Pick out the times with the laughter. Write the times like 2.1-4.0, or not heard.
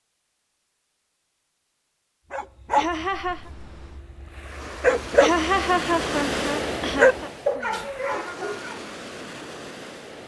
2.8-3.5, 5.2-7.3.